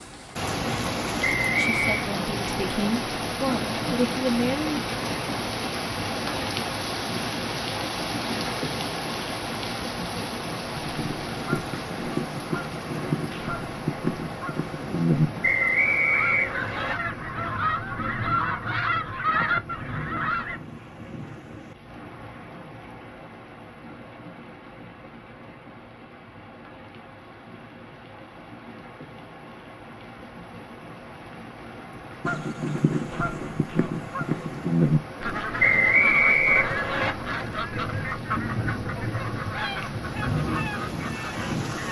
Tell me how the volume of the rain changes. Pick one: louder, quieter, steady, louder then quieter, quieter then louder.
quieter then louder.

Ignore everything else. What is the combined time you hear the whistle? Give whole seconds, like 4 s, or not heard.
4 s.